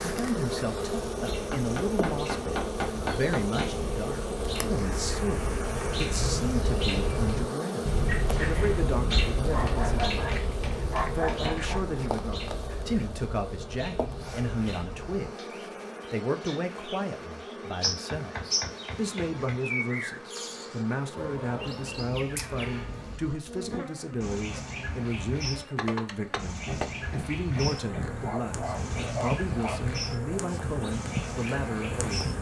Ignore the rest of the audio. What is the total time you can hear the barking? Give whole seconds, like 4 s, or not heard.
5 s.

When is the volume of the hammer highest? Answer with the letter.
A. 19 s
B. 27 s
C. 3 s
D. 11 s
C.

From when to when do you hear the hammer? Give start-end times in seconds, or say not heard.
1.5-3.6, 9.7-11.4, 17.8-19.6, 26.5-28.2.